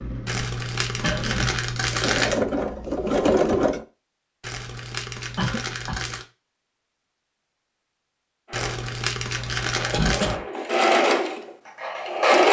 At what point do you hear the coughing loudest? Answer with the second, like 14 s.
10 s.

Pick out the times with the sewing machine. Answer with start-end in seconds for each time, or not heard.
0.0-3.9, 8.4-12.4.